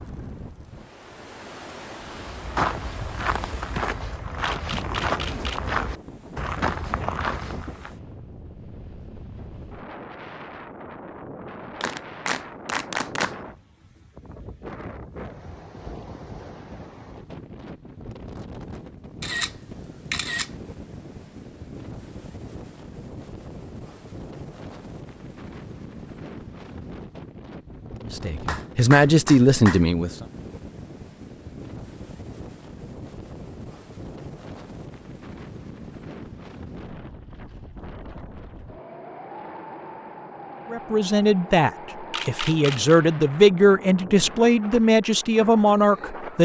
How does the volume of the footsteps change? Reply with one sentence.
The volume of the footsteps stays about the same.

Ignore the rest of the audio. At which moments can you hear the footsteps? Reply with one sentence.
You can hear the footsteps from 2.2 to 7.9 s.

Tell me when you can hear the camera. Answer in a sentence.
The camera can be heard from 4.4 to 5.6 s, from 19.2 to 20.5 s and from 42.1 to 43.0 s.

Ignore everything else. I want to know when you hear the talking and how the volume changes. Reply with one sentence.
The talking can be heard briefly from 28.1 to 30.2 s; and from 40.7 to 46.4 s, at a steady volume.